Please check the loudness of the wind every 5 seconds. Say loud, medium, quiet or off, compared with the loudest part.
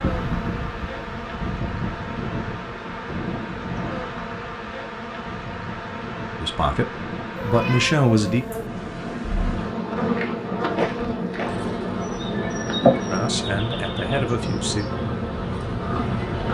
loud, medium, loud, loud.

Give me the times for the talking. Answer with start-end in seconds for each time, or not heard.
6.4-8.6, 13.1-14.8.